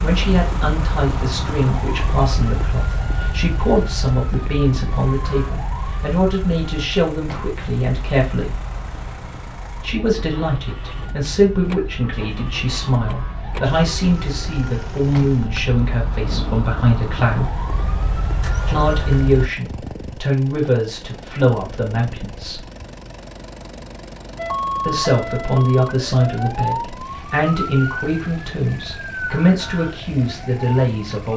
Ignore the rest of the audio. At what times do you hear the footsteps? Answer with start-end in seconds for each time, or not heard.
not heard.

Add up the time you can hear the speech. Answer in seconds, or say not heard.
27 s.